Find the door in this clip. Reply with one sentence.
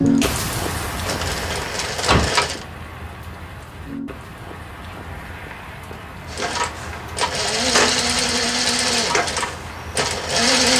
You can hear the door from 1.5 to 2.3 s.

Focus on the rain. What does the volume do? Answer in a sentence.
The volume of the rain goes down.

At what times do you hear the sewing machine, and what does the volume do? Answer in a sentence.
You can hear the sewing machine briefly from 0.0 to 2.6 s; and from 6.3 to 10.7 s, getting louder then quieter.